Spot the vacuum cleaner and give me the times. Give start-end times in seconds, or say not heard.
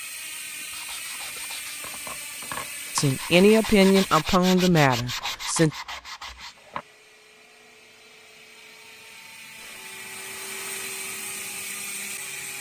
6.5-12.5.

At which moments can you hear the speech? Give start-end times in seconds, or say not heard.
3.0-5.7.